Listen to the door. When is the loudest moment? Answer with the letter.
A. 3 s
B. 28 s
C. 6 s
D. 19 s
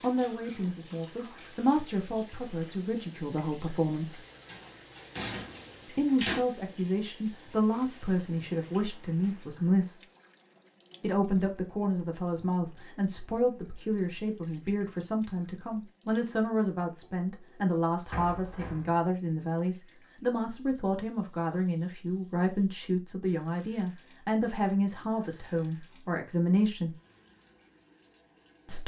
C.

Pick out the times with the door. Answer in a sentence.
You can hear the door from 4.5 to 6.5 s and from 18.1 to 19.1 s.